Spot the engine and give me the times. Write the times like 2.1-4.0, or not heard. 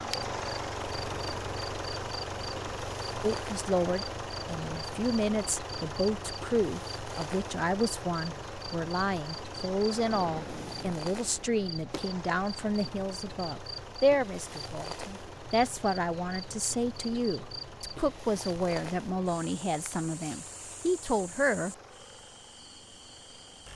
0.0-23.7.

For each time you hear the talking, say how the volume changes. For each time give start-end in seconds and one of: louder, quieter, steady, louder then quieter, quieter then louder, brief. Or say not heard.
3.2-21.8 steady.